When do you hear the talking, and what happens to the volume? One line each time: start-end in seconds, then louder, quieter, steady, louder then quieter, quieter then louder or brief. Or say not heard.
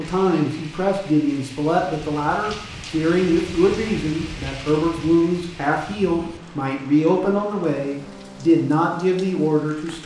0.0-10.0 steady.